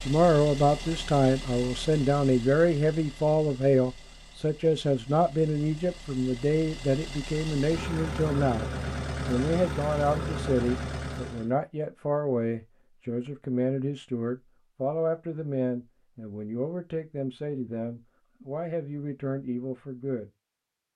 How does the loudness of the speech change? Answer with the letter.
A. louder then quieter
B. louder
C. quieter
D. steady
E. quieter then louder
C.